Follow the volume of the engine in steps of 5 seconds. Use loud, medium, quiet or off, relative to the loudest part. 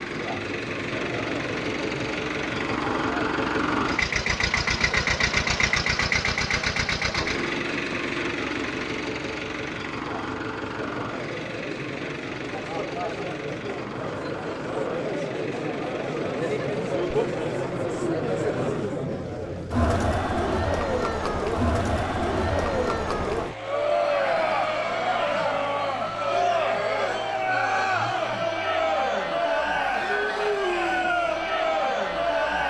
loud, loud, medium, quiet, quiet, quiet, quiet.